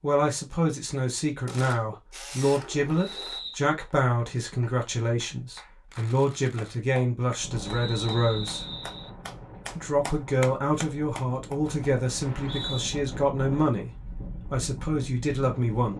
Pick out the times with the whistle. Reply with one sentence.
The whistle can be heard from 3.0 to 3.6 s, from 7.6 to 9.1 s and from 12.2 to 12.9 s.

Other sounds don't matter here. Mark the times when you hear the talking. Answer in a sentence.
The talking can be heard from 0.0 to 8.7 s, from 9.8 to 13.9 s and from 14.5 to 15.9 s.